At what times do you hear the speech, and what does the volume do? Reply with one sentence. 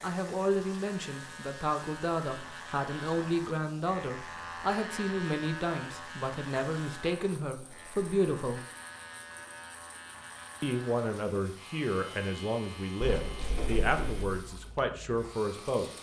The speech can be heard from 0.0 to 8.6 s, at a steady volume; and from 10.6 to 15.9 s, at a steady volume.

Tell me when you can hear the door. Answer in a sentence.
You can hear the door from 13.0 to 14.4 s.